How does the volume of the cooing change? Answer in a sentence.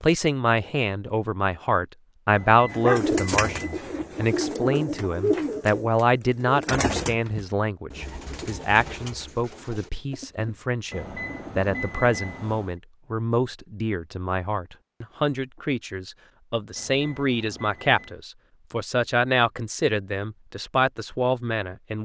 The loudness of the cooing goes down.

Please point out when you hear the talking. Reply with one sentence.
The talking can be heard from 0.0 to 22.0 s.